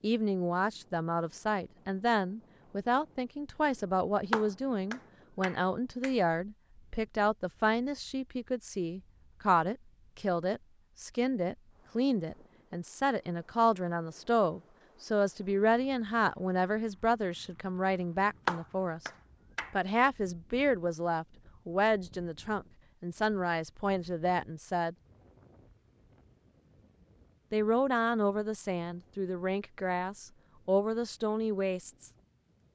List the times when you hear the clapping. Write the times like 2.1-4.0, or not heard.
4.3-6.2, 18.4-19.8.